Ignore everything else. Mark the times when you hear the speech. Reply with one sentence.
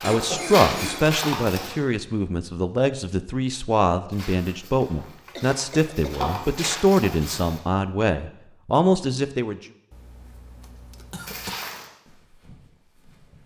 The speech can be heard from 0.0 to 9.6 s.